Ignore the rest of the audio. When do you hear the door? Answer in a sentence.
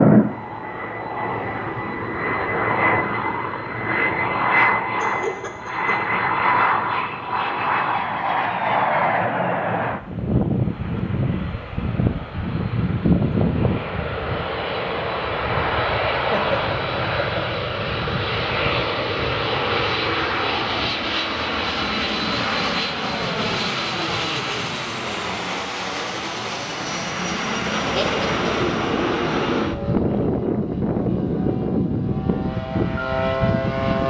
The door can't be heard in this clip.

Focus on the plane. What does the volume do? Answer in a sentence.
The volume of the plane stays about the same.